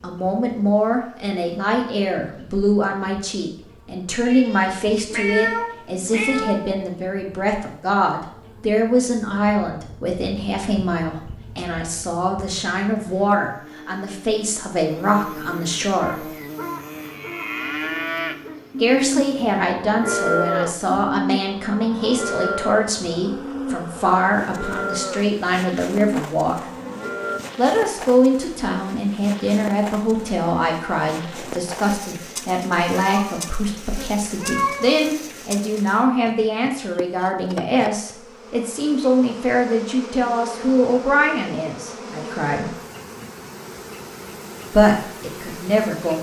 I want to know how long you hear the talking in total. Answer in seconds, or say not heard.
41 s.